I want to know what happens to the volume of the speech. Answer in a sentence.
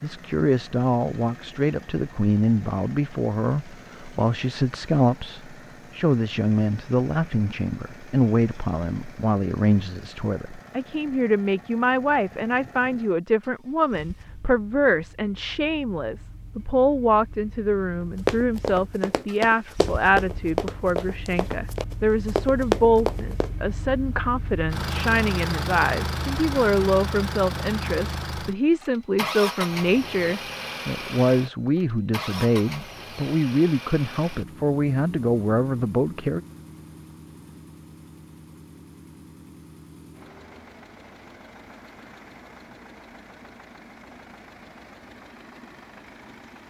The volume of the speech stays about the same.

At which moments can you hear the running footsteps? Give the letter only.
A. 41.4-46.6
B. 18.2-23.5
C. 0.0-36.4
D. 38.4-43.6
B.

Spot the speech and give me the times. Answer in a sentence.
The speech can be heard from 0.0 to 36.4 s.